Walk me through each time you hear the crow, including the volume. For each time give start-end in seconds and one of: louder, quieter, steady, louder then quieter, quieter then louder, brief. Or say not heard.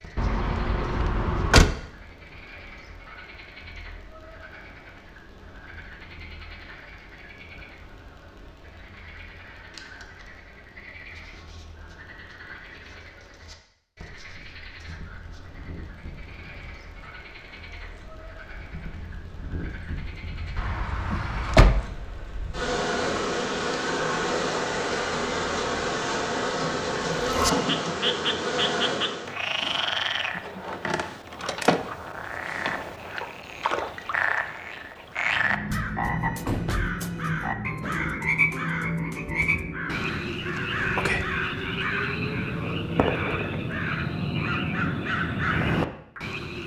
35.2-46.2 steady.